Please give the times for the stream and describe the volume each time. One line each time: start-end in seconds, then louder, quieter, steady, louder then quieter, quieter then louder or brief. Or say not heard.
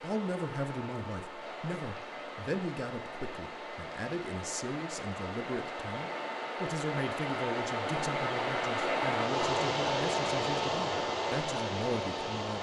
0.0-12.5 louder.